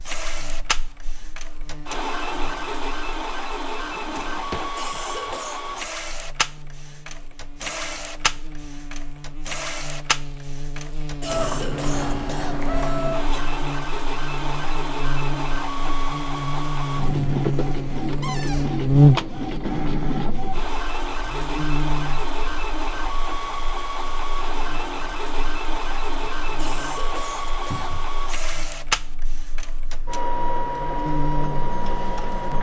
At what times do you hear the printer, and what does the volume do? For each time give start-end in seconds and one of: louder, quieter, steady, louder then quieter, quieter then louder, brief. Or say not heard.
0.0-32.5 steady.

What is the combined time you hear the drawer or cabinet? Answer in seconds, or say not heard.
2 s.